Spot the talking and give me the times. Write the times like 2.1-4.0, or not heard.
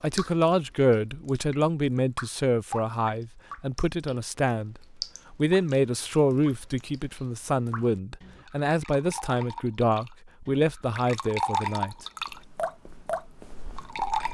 0.0-12.1.